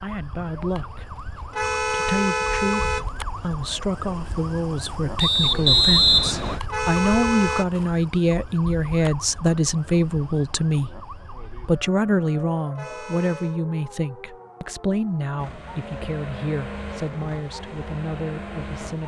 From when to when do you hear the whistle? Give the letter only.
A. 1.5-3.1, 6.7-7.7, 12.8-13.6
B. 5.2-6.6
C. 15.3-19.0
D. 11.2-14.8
B.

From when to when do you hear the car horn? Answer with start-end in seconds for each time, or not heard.
1.5-3.1, 6.7-7.7, 12.8-13.6.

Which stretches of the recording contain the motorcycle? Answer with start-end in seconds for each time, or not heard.
15.3-19.0.